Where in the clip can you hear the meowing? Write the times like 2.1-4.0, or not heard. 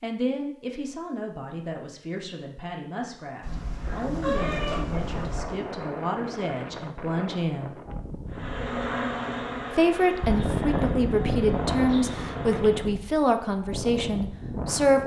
3.4-5.4.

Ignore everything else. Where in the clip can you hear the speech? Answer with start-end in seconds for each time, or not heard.
0.0-7.8, 9.8-15.0.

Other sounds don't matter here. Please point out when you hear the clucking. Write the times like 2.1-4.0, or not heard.
not heard.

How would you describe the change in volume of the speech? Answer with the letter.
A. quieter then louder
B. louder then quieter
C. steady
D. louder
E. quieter
D.